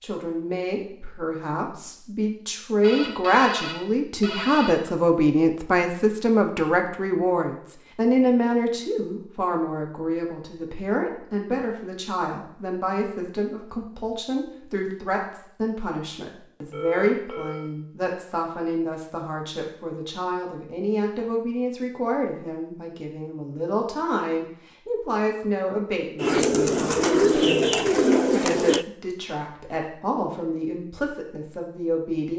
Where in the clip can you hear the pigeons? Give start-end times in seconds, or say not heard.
26.2-28.9.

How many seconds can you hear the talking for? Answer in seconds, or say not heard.
32 s.